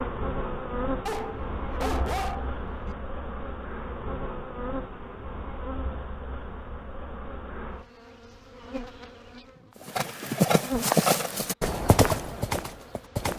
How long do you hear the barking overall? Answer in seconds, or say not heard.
2 s.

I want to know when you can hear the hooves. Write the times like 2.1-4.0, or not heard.
9.8-13.3.